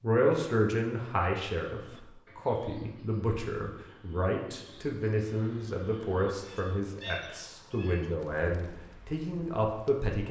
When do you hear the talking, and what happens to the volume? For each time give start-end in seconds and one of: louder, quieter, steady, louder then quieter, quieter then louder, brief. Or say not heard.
0.0-10.2 steady.